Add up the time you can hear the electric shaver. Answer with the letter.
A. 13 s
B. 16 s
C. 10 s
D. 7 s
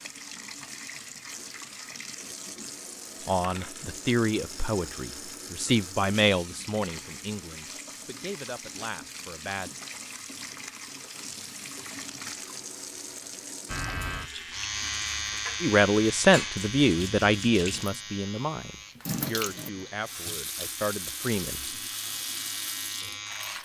C.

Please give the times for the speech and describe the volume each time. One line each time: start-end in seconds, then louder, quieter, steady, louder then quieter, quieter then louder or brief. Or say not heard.
3.2-9.7 quieter
15.6-21.6 quieter.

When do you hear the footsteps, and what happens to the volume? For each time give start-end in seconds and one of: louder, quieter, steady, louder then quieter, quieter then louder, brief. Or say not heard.
not heard.